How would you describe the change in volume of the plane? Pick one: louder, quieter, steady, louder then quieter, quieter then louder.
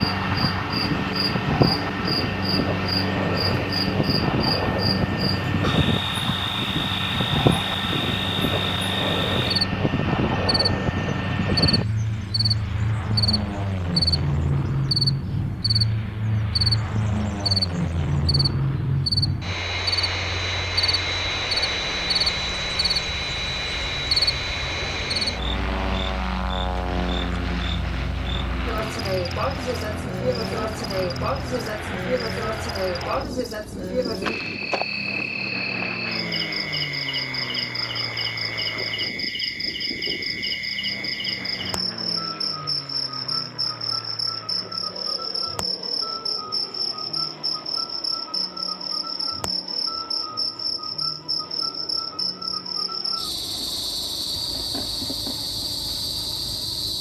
quieter.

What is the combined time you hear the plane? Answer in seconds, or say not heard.
57 s.